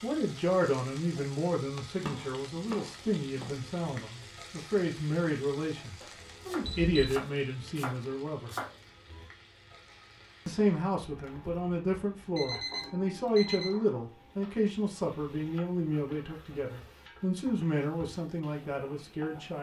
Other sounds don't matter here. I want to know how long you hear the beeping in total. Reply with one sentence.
The beeping can be heard for 2 seconds in total.